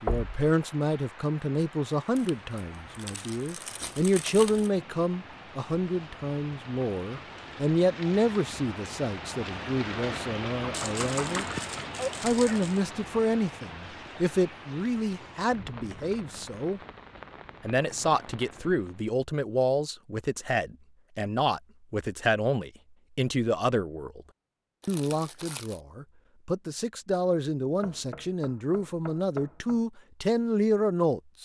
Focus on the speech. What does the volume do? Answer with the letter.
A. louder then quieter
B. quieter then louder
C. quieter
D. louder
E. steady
E.